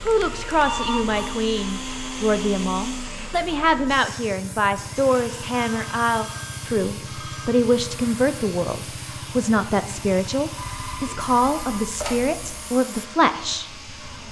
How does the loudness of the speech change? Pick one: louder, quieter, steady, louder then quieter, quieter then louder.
steady.